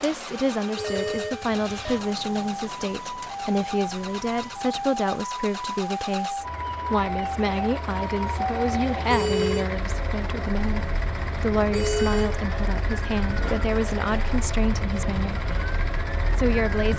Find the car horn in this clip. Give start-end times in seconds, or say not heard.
0.8-1.9, 9.1-9.7, 11.7-12.4.